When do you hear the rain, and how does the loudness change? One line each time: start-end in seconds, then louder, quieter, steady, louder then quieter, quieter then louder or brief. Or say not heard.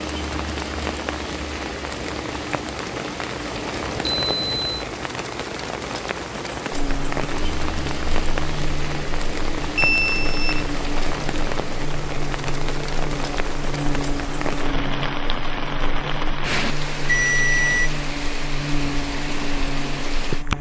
0.0-20.5 steady.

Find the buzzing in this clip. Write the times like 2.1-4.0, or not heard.
6.7-20.5.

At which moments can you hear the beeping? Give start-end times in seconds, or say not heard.
3.5-4.8, 9.8-11.1, 17.1-17.9.